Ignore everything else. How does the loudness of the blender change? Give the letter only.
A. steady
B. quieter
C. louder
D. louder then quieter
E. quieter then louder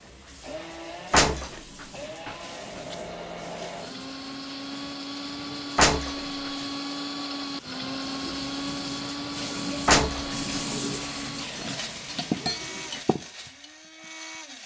D.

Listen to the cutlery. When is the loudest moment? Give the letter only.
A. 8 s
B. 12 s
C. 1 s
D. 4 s
B.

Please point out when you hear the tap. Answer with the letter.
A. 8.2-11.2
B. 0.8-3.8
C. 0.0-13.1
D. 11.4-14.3
C.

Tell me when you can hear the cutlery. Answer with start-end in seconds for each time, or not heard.
11.4-14.3.